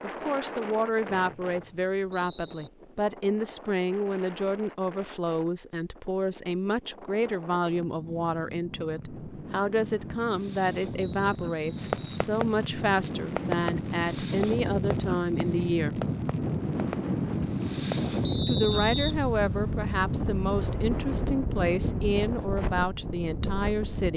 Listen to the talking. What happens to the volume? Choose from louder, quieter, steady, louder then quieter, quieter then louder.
steady.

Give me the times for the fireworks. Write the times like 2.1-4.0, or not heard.
11.8-18.1.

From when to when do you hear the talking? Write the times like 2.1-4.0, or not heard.
0.0-16.0, 18.4-24.1.